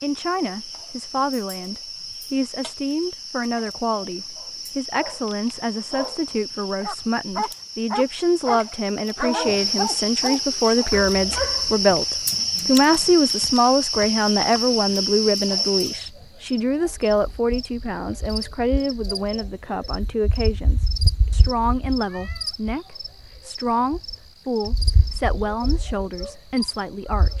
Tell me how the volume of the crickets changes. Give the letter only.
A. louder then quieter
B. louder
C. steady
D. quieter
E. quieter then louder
A.